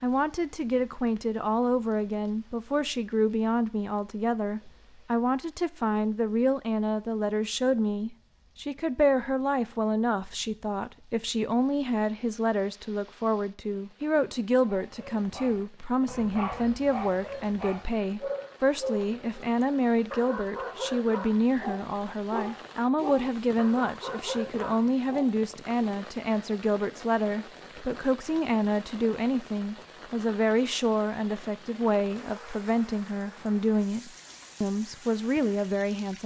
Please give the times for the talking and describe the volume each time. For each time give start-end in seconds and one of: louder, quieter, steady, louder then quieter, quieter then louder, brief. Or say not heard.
0.0-36.2 steady.